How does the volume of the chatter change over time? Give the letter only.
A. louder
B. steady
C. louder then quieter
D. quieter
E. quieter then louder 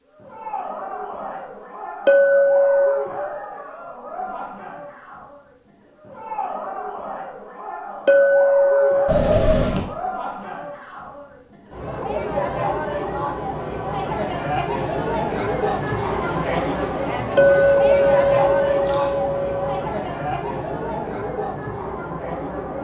A.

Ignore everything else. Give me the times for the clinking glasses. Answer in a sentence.
You can hear the clinking glasses from 2.0 to 3.1 s, from 8.1 to 9.1 s and from 17.4 to 19.8 s.